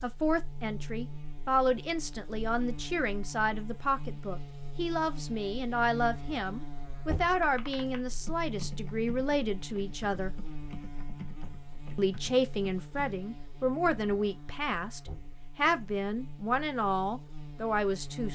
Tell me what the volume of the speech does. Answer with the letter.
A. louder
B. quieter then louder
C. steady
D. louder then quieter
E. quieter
C.